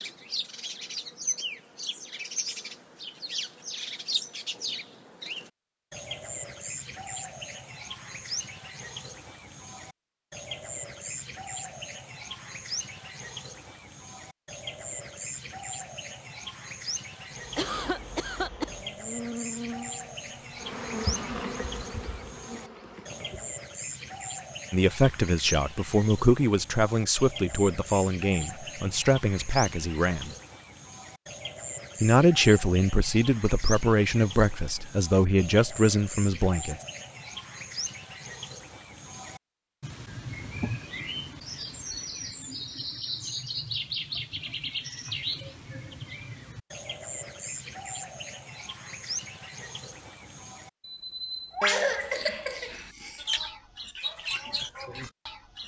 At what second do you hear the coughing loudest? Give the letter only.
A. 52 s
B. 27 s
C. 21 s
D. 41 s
A.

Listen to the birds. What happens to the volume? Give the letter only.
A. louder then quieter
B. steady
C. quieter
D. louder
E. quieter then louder
B.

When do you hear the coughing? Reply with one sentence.
You can hear the coughing from 17.6 to 18.7 s and from 51.6 to 53.2 s.